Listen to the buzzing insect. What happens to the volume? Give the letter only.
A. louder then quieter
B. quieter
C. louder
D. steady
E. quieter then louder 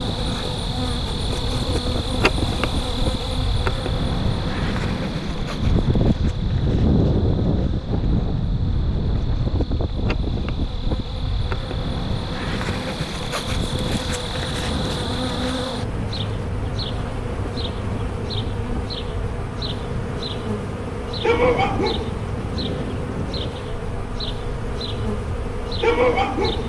E.